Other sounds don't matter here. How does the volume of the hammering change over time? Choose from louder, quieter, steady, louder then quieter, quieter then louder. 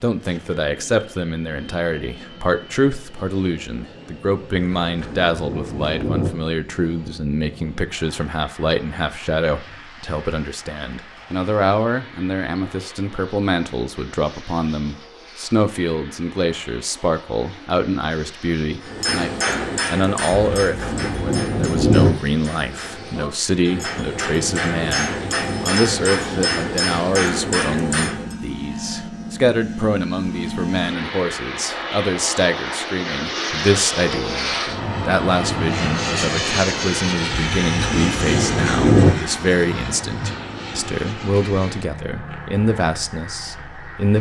quieter then louder.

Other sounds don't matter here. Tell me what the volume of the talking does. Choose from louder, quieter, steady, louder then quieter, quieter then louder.
steady.